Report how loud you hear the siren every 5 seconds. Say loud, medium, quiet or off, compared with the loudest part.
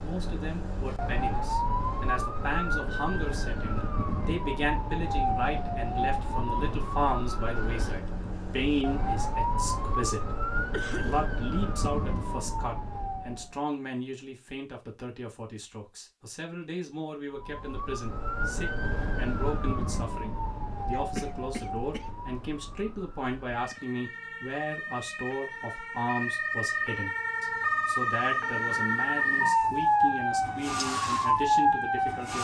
medium, medium, medium, medium, quiet, loud, loud.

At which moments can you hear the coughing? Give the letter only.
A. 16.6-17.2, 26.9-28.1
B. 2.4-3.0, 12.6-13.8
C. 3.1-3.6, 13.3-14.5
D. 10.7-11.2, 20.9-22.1
D.